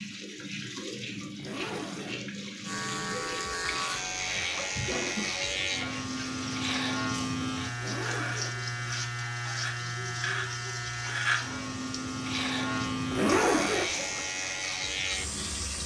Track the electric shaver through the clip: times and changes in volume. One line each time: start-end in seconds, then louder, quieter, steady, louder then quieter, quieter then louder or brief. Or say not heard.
2.6-15.8 steady.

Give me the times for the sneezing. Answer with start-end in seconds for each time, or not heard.
not heard.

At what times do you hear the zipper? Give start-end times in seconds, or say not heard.
1.1-2.2, 7.8-8.7, 12.9-14.2.